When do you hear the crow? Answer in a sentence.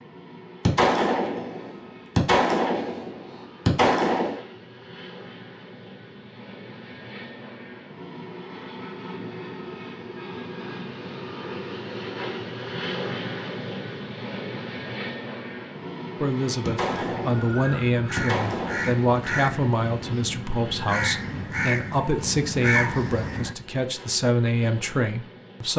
You can hear the crow from 16.9 to 23.6 s.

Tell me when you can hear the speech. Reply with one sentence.
The speech can be heard from 16.2 to 25.7 s.